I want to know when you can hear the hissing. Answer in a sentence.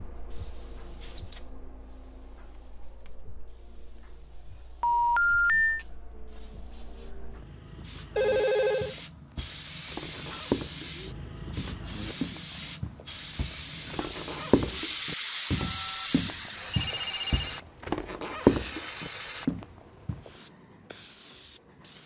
You can hear the hissing from 0.0 to 22.0 s.